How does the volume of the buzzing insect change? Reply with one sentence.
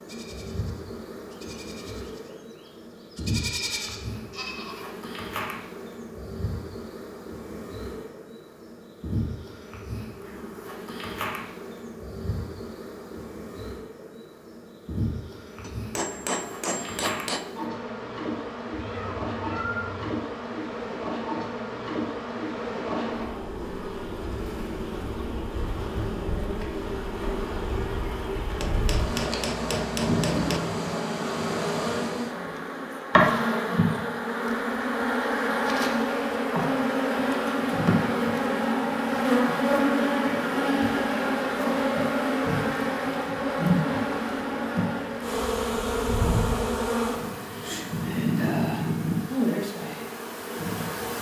The volume of the buzzing insect goes up.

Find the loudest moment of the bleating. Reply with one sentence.
The loudest moment of the bleating is at 4 seconds.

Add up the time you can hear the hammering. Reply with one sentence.
You can hear the hammering for 4 seconds altogether.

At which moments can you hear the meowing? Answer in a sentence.
The meowing can be heard from 18.7 to 20.1 s.